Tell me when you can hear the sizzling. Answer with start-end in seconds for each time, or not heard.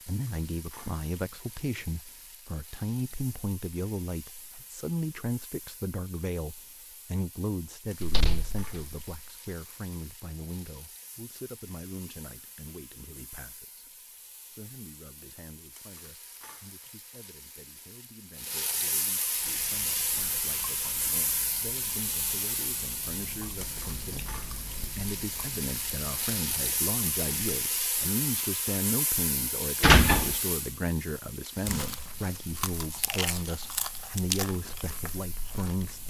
0.0-36.0.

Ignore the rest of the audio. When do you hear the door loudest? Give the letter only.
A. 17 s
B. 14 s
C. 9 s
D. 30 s
D.